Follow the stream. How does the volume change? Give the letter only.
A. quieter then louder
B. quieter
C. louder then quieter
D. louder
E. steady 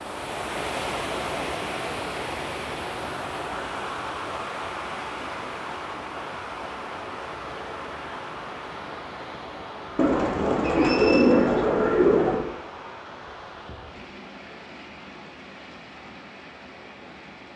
B.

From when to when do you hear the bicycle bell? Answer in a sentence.
The bicycle bell can't be heard in this clip.